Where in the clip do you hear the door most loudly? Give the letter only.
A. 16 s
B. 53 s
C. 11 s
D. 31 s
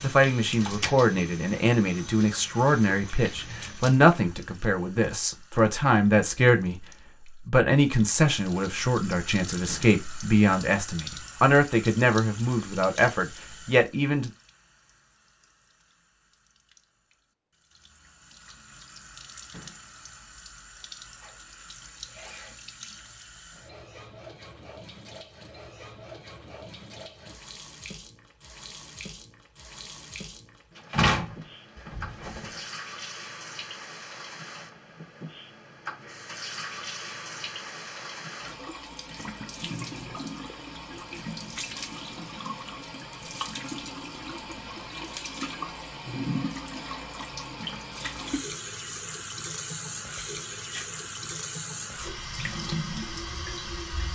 D.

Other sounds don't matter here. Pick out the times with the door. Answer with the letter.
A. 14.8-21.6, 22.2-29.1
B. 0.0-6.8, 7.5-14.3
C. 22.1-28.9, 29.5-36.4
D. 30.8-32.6
D.